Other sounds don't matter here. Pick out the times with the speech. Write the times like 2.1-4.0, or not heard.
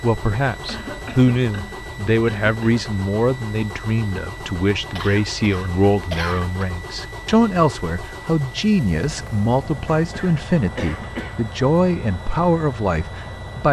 0.0-13.6.